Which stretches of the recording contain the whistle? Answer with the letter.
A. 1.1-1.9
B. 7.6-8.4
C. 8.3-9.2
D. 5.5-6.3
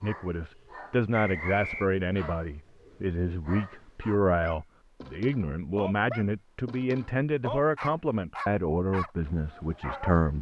A.